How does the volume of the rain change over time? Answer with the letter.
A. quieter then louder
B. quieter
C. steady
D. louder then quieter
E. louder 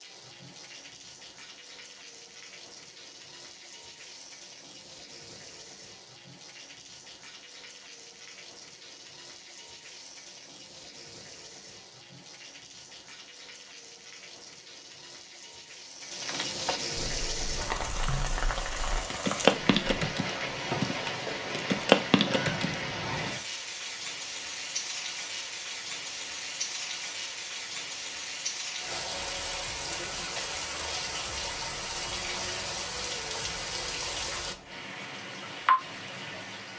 E.